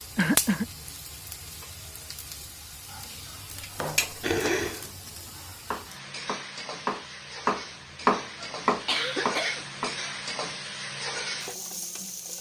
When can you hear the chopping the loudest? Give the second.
8 s.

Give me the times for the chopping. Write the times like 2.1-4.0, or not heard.
3.4-10.0.